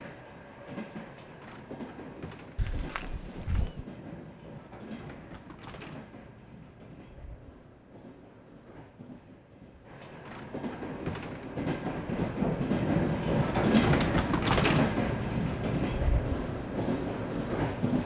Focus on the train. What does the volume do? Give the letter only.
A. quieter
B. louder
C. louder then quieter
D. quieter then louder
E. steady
B.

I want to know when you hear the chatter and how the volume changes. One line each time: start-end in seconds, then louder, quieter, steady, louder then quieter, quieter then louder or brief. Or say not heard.
not heard.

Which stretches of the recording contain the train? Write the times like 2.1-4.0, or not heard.
0.0-18.0.